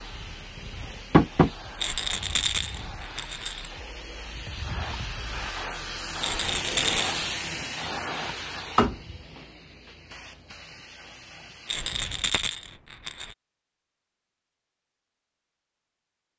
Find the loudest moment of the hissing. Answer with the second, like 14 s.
7 s.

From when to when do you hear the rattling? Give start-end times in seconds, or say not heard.
1.8-3.7, 6.2-7.2, 11.7-13.3.